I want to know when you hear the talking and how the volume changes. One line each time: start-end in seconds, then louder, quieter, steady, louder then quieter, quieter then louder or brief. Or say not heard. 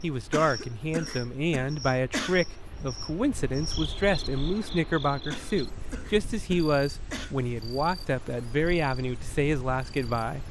0.0-10.4 steady.